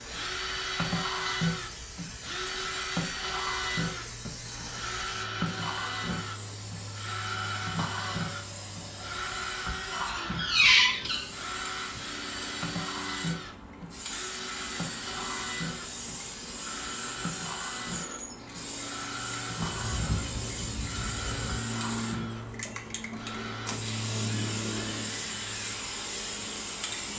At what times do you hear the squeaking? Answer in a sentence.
The squeaking can be heard from 10.1 to 11.2 s and from 19.6 to 21.6 s.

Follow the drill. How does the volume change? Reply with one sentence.
The volume of the drill goes down.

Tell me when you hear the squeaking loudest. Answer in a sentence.
The loudest moment of the squeaking is at 11 seconds.